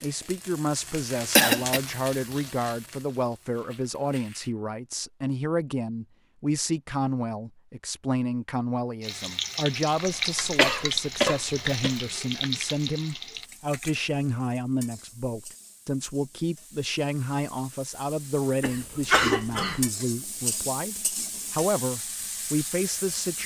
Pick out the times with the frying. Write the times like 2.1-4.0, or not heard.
0.0-4.5, 9.0-23.4.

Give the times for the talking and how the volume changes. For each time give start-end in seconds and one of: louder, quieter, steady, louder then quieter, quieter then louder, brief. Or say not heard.
0.0-23.4 steady.